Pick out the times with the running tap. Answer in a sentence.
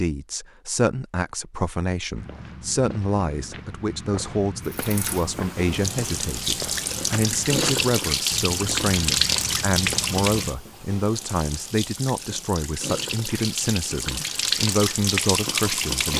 The running tap can be heard from 4.6 to 16.1 s.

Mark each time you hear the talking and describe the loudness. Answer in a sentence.
You can hear the talking from 0.0 to 16.1 s, at a steady volume.